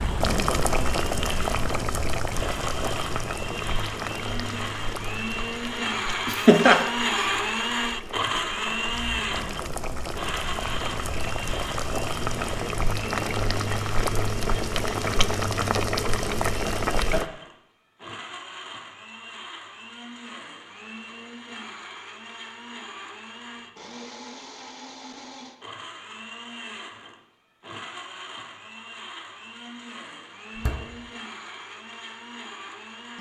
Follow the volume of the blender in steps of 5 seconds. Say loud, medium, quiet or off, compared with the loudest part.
medium, loud, medium, quiet, quiet, quiet, quiet.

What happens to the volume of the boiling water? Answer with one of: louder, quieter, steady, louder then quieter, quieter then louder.
quieter then louder.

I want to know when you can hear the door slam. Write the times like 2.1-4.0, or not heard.
30.6-31.0.